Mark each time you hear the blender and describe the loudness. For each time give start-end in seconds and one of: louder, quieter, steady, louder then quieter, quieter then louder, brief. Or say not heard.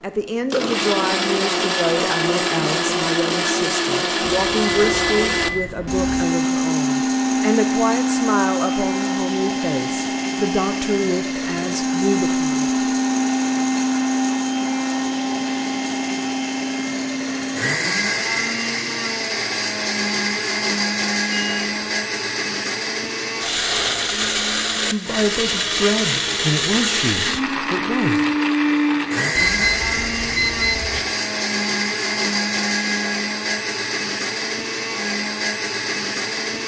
0.1-36.6 steady.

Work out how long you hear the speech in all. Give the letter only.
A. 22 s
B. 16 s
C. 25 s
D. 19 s
B.